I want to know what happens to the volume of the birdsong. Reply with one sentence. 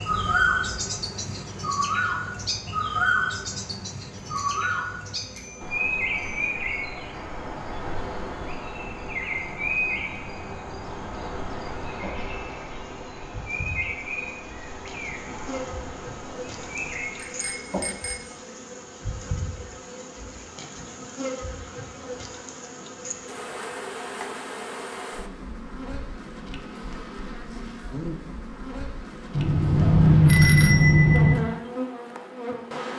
The volume of the birdsong goes down.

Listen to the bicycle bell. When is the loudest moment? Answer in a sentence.
The loudest moment of the bicycle bell is at 30 seconds.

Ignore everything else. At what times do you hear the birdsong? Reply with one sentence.
You can hear the birdsong from 0.0 to 17.4 s.